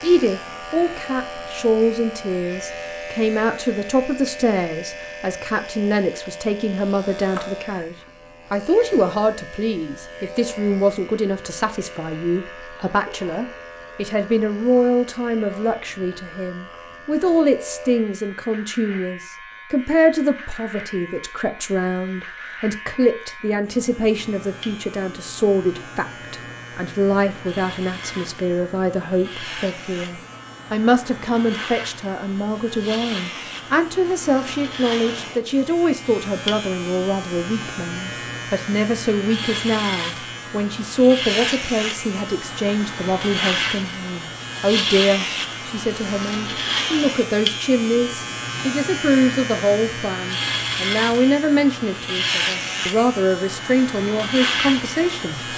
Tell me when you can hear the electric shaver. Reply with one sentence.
The electric shaver can be heard from 0.0 to 55.5 s.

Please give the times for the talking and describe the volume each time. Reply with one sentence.
The talking can be heard from 0.0 to 55.5 s, at a steady volume.